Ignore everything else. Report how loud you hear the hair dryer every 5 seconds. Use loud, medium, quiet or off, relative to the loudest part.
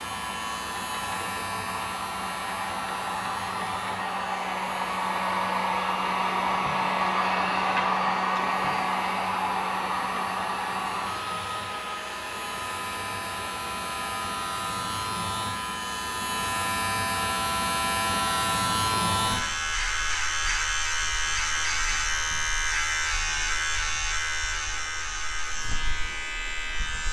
medium, loud, medium, quiet, quiet, quiet.